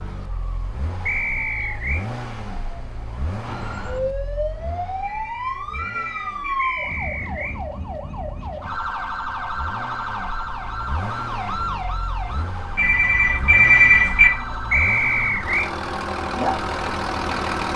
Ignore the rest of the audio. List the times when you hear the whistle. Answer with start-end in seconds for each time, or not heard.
1.1-2.0, 6.5-7.6, 14.7-15.7.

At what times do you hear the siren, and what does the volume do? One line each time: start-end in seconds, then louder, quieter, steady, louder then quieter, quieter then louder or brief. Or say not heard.
0.0-17.7 louder.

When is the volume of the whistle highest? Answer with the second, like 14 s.
15 s.